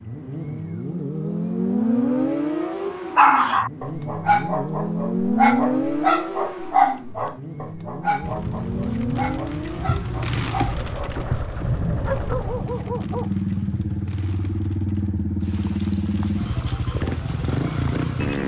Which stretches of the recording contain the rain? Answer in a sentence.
You can hear the rain from 8.2 to 18.4 s.